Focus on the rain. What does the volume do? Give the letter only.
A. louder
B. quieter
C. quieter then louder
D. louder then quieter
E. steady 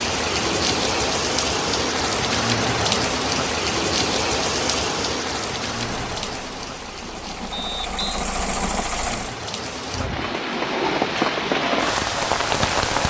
C.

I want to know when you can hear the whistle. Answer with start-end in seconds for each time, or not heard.
7.5-8.2.